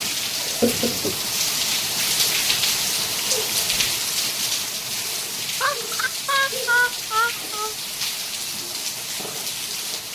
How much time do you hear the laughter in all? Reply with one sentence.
The laughter can be heard for 3 seconds in total.